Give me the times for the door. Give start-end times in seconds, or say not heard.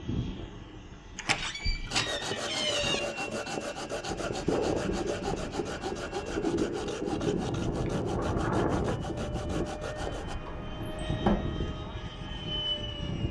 1.1-3.0, 9.9-11.3.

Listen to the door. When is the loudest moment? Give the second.
11 s.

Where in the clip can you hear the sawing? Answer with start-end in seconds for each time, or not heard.
1.9-10.3.